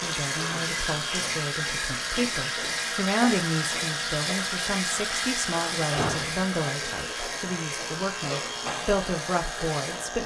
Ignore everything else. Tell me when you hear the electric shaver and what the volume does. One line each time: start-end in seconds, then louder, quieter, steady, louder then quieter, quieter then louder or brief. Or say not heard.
0.0-10.2 steady.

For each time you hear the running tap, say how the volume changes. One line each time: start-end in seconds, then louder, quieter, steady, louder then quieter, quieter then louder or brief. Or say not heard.
0.0-10.1 quieter.